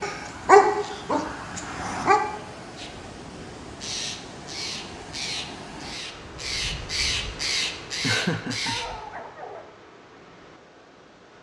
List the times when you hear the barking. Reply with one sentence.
The barking can be heard from 0.0 to 2.2 s and from 8.1 to 9.7 s.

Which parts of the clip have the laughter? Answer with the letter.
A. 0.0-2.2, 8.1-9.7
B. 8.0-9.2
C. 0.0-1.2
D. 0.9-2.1
B.